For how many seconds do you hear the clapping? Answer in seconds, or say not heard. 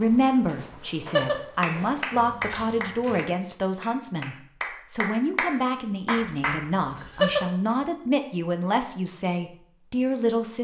6 s.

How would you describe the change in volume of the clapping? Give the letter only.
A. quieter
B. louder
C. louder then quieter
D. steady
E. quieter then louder
E.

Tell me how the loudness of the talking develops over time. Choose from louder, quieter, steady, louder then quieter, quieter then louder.
steady.